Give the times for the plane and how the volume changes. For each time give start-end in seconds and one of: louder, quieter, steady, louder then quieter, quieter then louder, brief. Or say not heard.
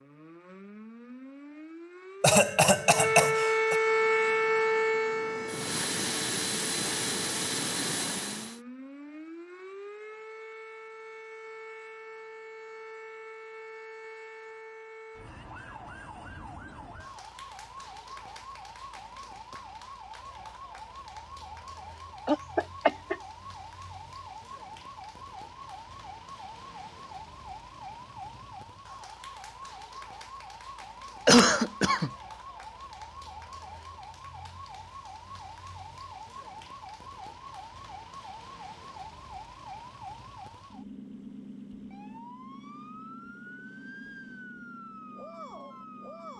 3.8-8.6 louder.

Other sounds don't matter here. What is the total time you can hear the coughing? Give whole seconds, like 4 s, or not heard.
3 s.